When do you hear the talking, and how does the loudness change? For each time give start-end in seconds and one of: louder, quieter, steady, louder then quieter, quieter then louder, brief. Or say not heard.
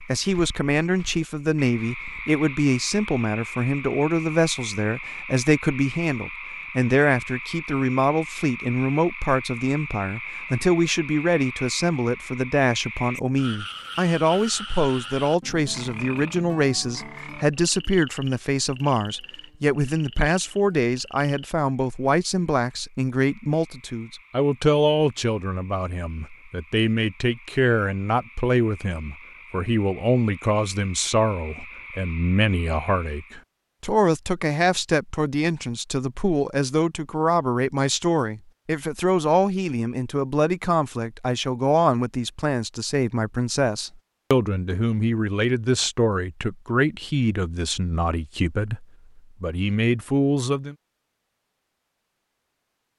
0.1-50.8 steady.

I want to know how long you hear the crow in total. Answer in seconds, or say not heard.
not heard.